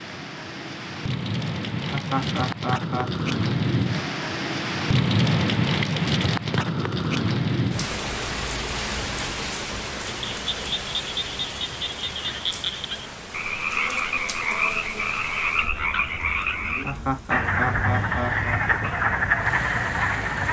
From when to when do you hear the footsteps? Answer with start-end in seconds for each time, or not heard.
not heard.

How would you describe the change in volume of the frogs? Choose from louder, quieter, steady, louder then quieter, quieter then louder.
louder.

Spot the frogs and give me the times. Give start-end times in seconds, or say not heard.
10.3-20.4.